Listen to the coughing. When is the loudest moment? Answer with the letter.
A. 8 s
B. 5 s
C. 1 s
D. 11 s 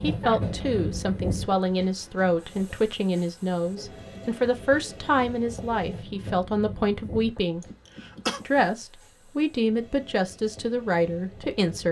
A.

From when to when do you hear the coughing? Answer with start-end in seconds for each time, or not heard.
0.2-0.8, 7.6-8.4.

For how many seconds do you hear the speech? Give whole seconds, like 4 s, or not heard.
11 s.